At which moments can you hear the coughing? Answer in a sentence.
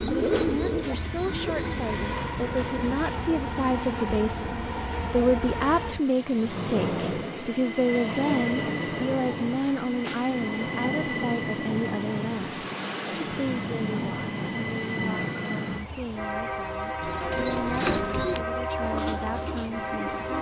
You can't hear the coughing here.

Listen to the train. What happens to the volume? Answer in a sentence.
The loudness of the train stays about the same.